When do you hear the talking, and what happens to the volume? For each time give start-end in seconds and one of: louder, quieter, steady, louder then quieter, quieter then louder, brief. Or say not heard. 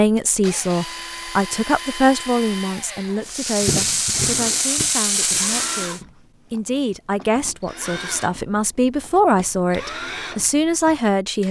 0.0-11.4 quieter then louder.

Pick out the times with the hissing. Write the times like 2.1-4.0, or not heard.
3.2-6.0.